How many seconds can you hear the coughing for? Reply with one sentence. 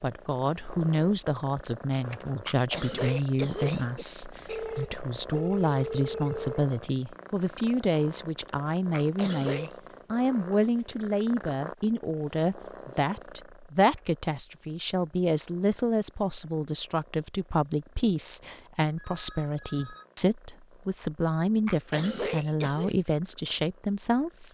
You can hear the coughing for 4 seconds altogether.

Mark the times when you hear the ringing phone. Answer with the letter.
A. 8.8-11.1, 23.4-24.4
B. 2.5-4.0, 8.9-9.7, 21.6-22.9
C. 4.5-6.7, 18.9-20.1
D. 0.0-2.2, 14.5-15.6
C.